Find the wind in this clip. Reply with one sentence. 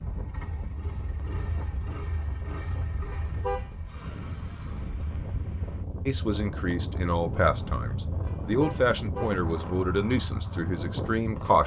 The wind can be heard from 0.0 to 11.6 s.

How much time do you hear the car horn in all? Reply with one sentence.
You can hear the car horn for 2 seconds altogether.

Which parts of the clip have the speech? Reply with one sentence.
You can hear the speech from 6.0 to 11.6 s.